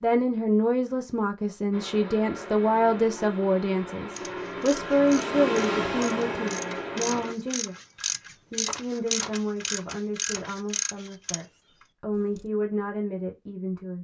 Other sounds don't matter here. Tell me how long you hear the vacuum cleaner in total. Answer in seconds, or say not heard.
6 s.